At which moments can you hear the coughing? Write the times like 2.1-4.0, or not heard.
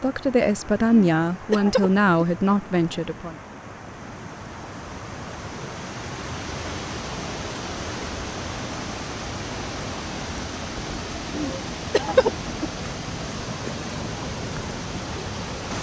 0.9-2.2, 11.3-12.7.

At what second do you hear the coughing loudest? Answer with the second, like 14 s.
12 s.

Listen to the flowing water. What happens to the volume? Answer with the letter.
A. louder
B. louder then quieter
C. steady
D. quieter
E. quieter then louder
A.